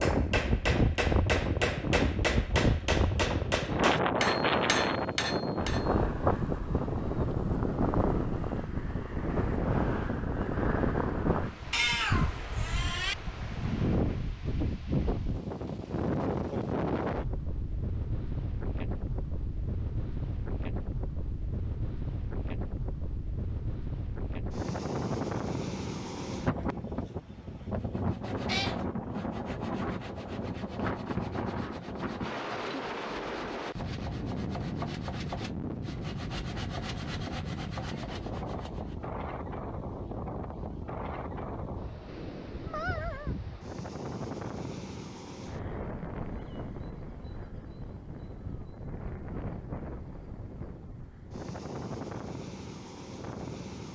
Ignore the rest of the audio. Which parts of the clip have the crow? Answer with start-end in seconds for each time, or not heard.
not heard.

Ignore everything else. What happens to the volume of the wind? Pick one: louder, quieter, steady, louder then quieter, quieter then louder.
quieter.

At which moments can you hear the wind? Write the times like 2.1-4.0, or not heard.
0.0-53.9.